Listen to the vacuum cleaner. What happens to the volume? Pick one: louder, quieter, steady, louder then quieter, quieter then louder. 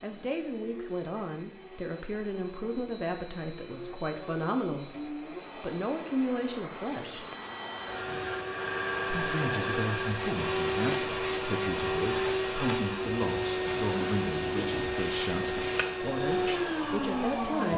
louder.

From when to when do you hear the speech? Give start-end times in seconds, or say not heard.
0.0-4.9, 5.6-7.2, 9.1-17.7.